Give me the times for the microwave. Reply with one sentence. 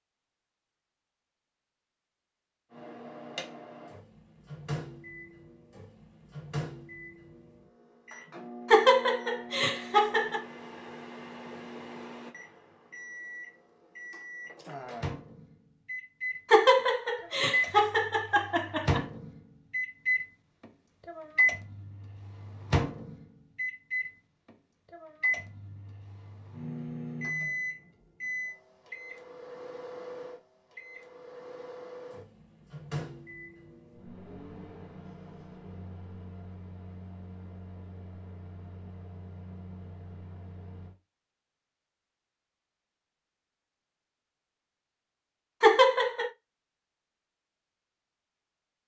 The microwave can be heard from 2.7 to 41.0 s.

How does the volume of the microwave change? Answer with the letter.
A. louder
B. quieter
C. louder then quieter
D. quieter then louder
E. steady
C.